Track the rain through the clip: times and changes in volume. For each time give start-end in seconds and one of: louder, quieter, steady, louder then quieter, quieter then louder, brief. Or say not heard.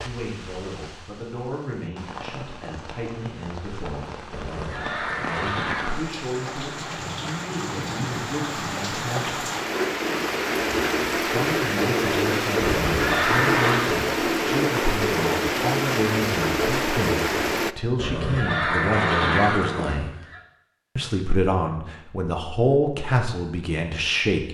0.0-17.8 louder.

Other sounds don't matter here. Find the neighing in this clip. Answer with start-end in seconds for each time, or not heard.
4.3-6.0, 12.6-13.9, 17.9-20.4.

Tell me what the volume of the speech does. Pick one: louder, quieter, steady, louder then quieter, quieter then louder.
louder.